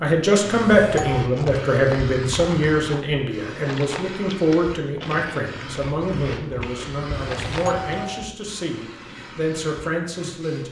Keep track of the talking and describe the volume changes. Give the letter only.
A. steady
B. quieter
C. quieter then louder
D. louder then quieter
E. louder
B.